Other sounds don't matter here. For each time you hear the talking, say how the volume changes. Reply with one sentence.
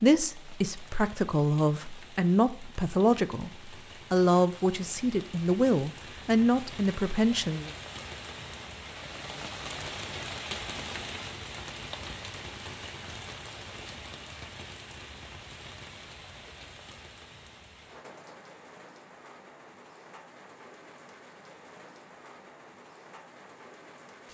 The talking can be heard from 0.0 to 7.7 s, at a steady volume.